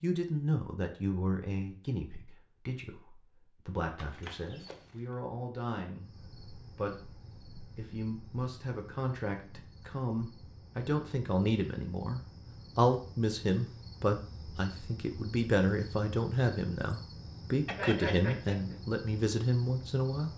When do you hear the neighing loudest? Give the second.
18 s.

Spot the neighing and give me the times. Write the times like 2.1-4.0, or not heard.
4.0-4.9, 17.6-18.8.